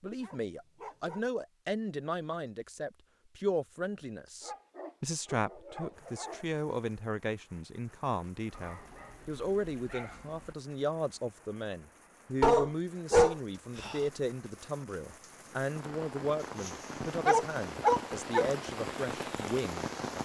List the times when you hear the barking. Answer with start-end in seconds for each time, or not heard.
0.1-1.2, 4.4-6.5, 8.5-10.6, 12.4-14.1, 16.4-18.4.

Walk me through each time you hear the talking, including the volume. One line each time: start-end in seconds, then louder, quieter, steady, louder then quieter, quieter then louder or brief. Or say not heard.
0.0-20.2 steady.